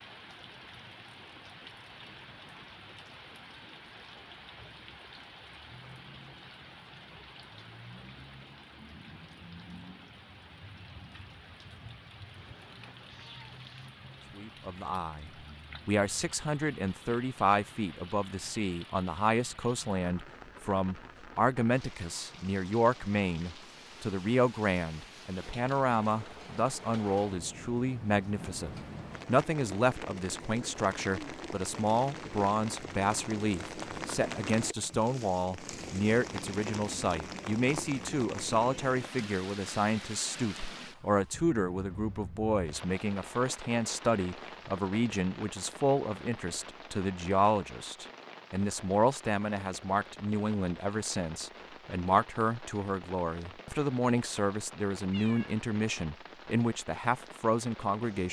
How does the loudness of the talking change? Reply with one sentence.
The loudness of the talking stays about the same.